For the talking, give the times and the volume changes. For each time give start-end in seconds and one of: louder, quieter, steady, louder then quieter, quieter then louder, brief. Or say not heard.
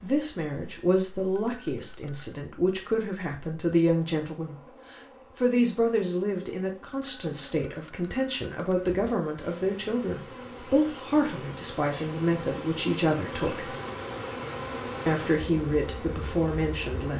0.0-13.7 steady
15.1-17.1 brief.